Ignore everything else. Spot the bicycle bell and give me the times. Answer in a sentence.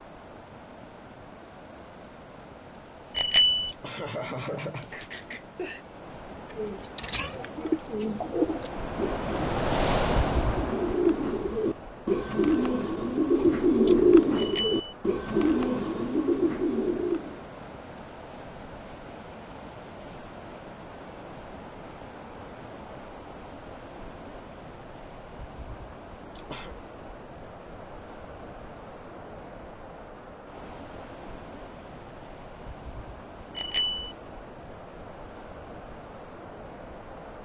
You can hear the bicycle bell from 3.1 to 3.7 s, from 14.3 to 14.9 s and from 33.5 to 34.1 s.